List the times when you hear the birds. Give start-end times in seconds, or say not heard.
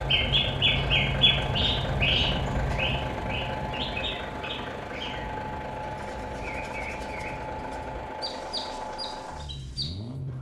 0.0-10.3.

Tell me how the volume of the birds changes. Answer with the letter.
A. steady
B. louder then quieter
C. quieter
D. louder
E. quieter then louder
C.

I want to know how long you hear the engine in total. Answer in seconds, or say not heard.
10 s.